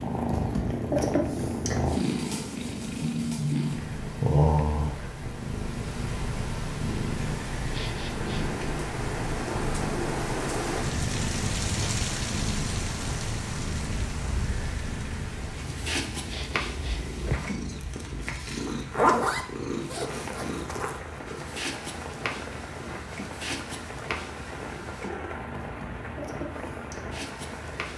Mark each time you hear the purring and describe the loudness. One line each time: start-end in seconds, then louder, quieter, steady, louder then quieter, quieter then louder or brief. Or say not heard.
0.0-27.9 quieter.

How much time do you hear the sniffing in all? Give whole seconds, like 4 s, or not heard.
2 s.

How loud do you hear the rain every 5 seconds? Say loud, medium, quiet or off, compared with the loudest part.
medium, loud, loud, medium, medium, medium.